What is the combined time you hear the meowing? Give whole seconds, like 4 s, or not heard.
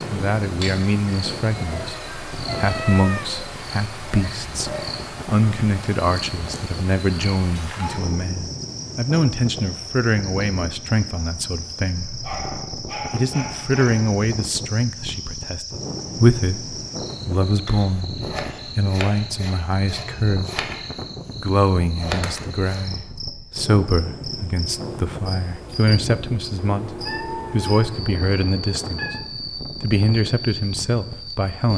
5 s.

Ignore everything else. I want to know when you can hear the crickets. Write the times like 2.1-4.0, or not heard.
0.0-31.7.